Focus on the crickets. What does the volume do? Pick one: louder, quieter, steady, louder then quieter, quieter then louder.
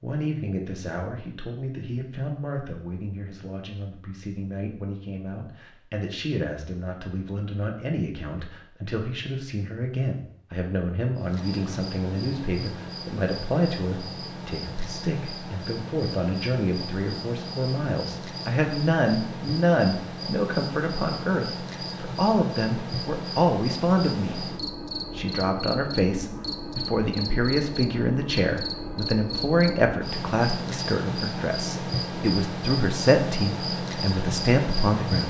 louder.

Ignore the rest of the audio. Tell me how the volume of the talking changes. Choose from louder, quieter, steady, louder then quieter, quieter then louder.
louder.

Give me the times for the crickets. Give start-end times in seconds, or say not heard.
11.2-35.2.